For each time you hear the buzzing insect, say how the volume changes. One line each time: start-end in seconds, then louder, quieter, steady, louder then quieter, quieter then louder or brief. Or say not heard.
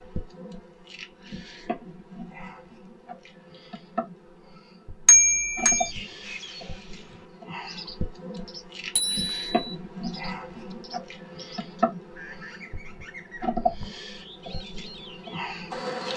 0.0-16.1 louder.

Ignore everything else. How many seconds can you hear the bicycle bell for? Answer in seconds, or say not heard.
2 s.